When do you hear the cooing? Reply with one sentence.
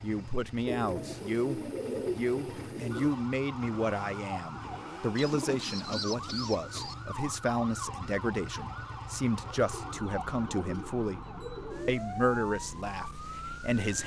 The cooing can be heard from 0.7 to 3.1 s, from 5.2 to 7.0 s and from 9.4 to 11.9 s.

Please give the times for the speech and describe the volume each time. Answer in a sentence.
The speech can be heard from 0.0 to 11.2 s, at a steady volume; and briefly from 11.8 to 14.0 s.